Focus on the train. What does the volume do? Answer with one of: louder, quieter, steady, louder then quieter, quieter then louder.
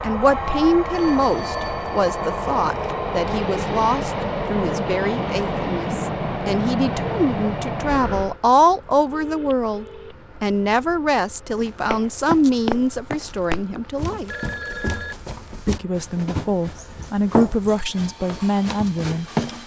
quieter.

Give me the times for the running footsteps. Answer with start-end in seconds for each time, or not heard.
11.6-19.6.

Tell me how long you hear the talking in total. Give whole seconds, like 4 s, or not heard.
18 s.